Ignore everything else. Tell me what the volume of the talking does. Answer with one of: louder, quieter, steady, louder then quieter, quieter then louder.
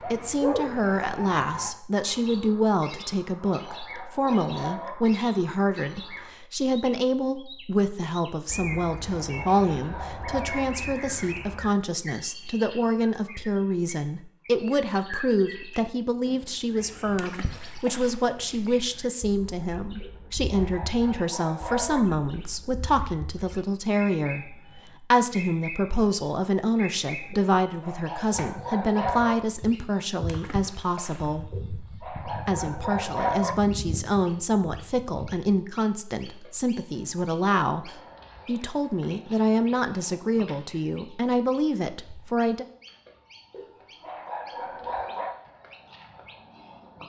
steady.